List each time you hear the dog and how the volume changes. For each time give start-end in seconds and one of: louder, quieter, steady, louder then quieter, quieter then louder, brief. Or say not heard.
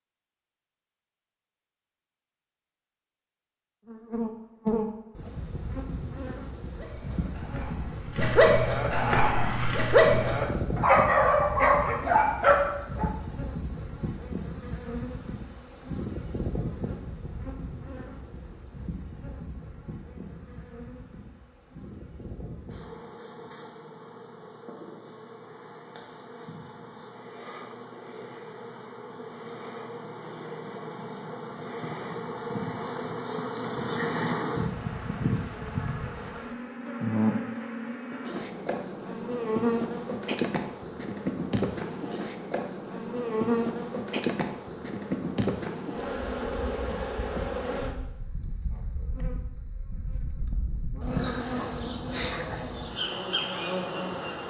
6.8-13.1 louder.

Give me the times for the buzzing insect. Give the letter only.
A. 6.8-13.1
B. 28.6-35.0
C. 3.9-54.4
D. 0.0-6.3
C.